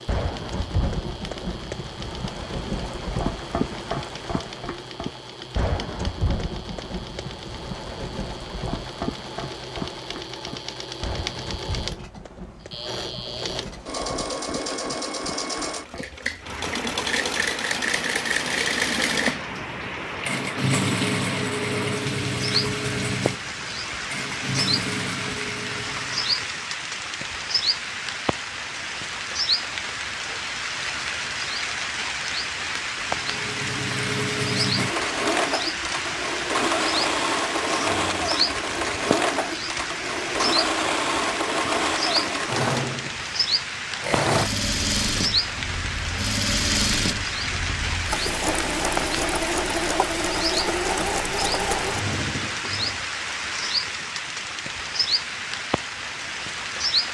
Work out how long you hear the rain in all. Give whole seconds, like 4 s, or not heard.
57 s.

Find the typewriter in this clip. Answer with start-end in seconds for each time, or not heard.
not heard.